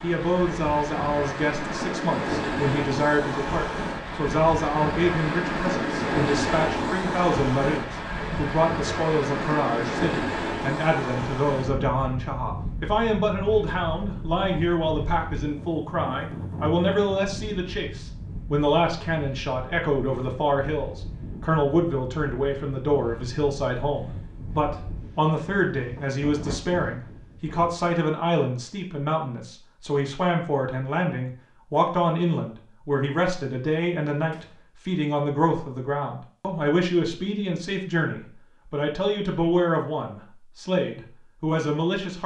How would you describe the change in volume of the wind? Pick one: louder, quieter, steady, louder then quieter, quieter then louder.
quieter.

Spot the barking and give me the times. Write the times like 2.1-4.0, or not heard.
not heard.